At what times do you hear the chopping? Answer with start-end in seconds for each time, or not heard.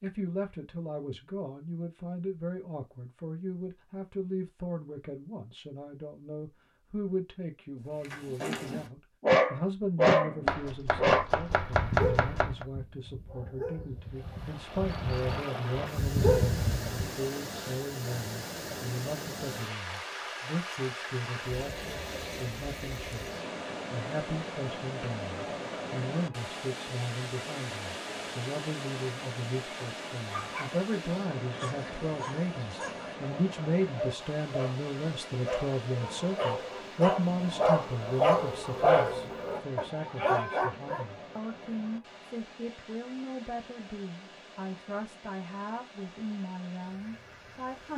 10.4-12.7.